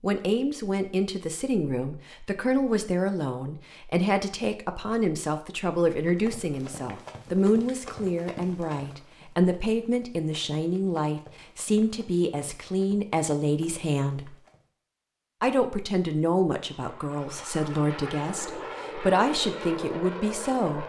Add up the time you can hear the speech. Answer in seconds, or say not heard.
20 s.